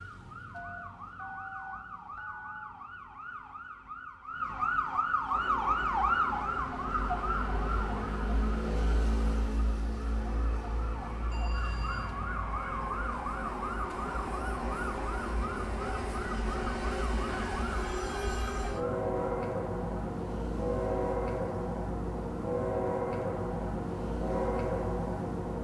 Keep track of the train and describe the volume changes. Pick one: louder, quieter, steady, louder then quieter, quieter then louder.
louder.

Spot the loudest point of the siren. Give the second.
6 s.